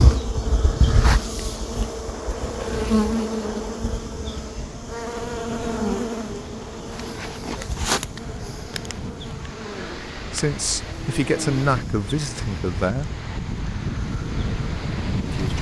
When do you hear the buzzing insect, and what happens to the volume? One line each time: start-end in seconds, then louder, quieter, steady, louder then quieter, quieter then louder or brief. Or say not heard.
0.0-15.5 quieter.